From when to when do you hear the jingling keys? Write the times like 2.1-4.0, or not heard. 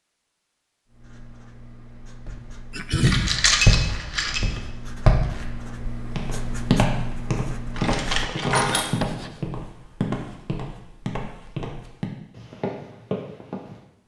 3.0-4.4, 7.8-8.9.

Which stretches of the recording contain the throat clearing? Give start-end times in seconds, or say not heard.
2.7-3.4.